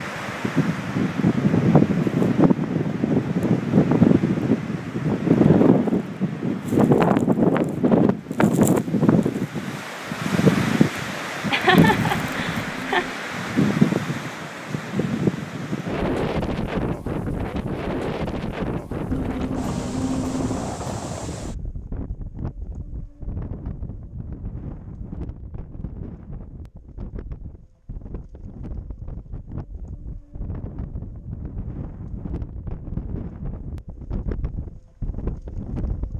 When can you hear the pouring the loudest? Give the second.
20 s.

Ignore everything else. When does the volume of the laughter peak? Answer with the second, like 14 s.
12 s.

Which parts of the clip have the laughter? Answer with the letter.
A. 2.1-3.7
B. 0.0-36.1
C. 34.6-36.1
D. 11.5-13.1
D.